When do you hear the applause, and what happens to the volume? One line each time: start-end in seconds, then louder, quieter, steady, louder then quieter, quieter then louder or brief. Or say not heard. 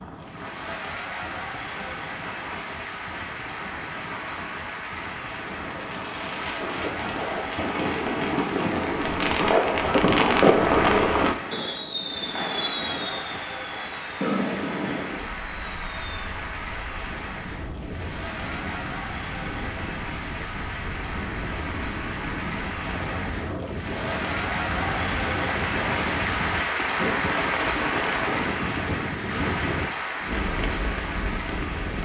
0.0-32.0 louder.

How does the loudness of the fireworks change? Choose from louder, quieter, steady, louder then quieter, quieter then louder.
louder then quieter.